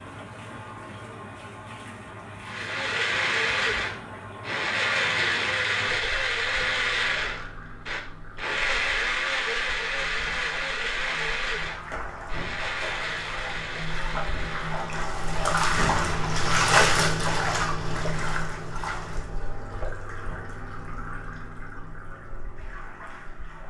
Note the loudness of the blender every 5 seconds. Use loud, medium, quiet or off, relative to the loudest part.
loud, loud, medium, off, off.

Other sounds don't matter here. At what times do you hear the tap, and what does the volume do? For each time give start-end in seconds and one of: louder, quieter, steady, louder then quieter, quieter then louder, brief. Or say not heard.
0.0-23.6 louder then quieter.